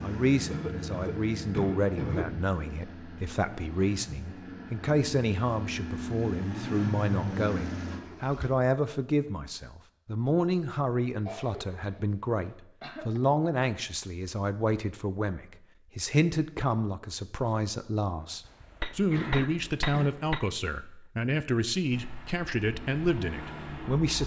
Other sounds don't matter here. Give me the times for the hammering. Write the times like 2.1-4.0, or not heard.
18.4-20.4.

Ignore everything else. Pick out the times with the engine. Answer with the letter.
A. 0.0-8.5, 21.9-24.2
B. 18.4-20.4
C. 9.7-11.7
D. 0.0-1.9
A.